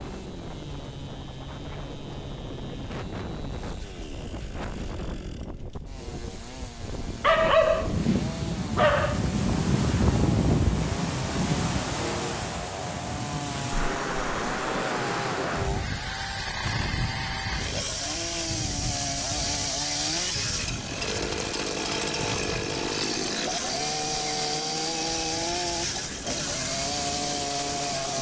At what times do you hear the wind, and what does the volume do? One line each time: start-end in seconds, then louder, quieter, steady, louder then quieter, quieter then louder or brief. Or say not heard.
0.0-28.1 louder then quieter.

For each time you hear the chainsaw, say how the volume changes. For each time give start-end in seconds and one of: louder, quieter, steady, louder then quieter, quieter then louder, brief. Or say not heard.
0.0-28.1 louder.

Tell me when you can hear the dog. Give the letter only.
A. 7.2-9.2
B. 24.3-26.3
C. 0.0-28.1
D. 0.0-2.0
A.